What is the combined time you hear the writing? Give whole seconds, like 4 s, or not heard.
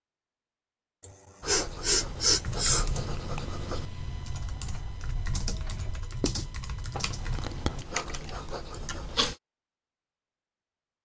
8 s.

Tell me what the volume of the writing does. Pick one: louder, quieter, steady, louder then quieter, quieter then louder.
quieter then louder.